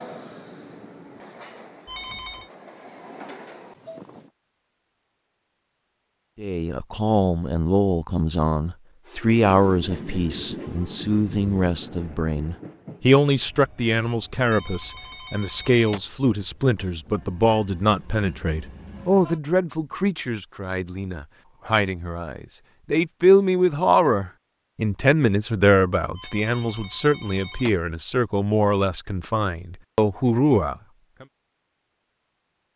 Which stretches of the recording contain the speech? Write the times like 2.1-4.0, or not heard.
6.3-31.2.